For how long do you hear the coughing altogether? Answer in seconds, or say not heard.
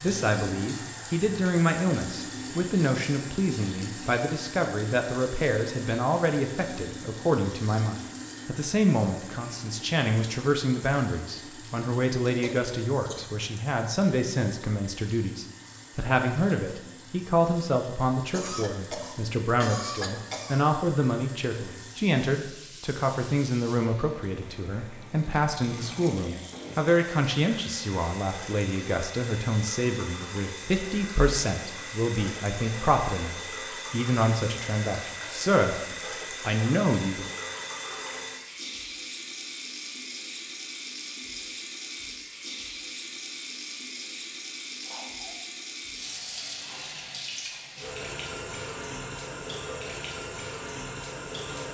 4 s.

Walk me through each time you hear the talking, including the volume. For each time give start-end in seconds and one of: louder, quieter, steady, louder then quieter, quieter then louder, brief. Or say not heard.
0.0-37.3 steady.